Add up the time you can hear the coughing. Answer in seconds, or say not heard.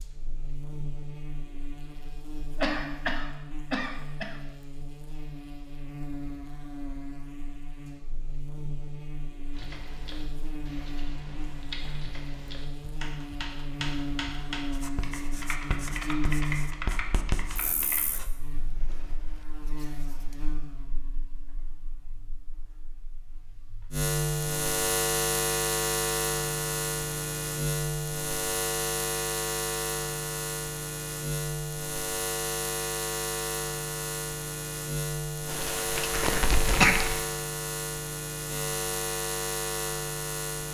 3 s.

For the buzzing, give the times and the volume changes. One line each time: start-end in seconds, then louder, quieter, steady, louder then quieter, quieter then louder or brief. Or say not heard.
0.0-40.6 louder.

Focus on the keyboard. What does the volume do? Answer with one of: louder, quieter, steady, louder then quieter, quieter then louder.
louder.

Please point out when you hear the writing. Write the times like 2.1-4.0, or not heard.
14.7-20.4.